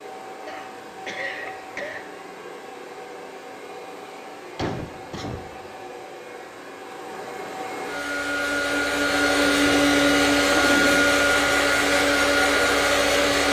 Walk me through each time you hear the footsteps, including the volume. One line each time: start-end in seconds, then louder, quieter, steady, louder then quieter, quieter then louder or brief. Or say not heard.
not heard.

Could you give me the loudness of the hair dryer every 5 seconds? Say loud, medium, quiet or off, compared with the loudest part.
quiet, medium, loud.